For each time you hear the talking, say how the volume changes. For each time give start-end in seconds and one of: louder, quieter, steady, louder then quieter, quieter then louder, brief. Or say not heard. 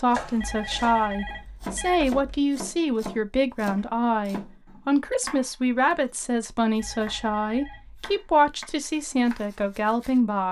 0.0-10.4 steady.